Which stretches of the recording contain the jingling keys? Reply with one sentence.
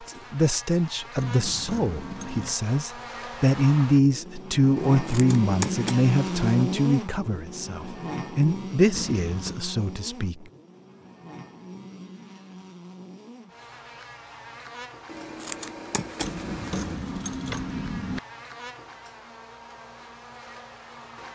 The jingling keys can be heard from 1.1 to 2.5 s, from 8.9 to 9.6 s and from 16.2 to 18.2 s.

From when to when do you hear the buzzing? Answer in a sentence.
The buzzing can be heard from 0.0 to 21.3 s.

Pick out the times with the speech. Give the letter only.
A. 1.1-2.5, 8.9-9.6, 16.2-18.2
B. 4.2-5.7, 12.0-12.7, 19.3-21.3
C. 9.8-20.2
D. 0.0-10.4
D.